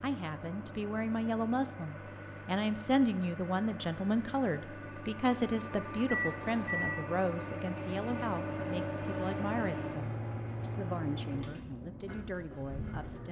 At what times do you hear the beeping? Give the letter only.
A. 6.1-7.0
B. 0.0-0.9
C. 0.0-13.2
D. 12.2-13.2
A.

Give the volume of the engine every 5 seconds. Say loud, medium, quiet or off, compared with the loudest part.
medium, loud, loud.